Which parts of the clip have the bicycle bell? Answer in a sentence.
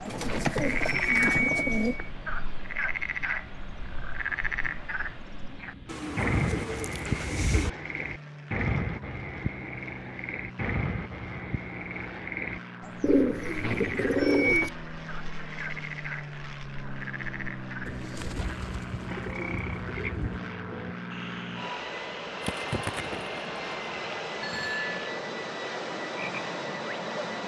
The bicycle bell can be heard from 0.2 to 2.1 s, from 13.6 to 14.7 s and from 24.4 to 25.0 s.